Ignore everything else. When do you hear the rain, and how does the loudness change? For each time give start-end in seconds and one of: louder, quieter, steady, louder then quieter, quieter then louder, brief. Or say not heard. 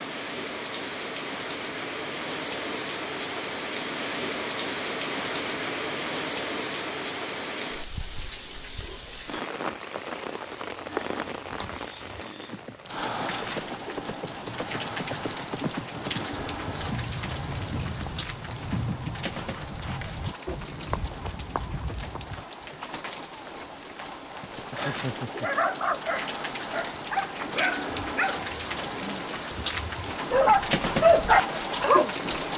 0.0-32.5 quieter then louder.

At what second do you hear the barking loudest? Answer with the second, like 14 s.
31 s.